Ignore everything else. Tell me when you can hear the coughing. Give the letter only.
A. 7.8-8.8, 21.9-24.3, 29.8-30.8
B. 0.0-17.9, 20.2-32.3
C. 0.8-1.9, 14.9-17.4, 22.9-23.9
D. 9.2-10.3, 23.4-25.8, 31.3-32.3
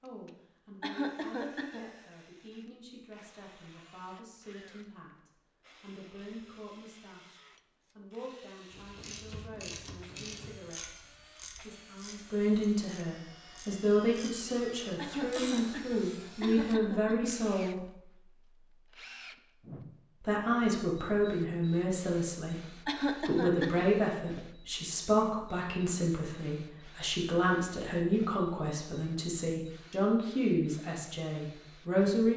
C.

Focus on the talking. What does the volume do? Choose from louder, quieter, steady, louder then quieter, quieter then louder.
louder.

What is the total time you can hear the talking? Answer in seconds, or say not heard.
30 s.